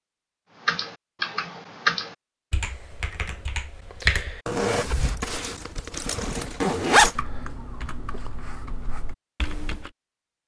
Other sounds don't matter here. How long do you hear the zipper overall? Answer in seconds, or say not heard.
3 s.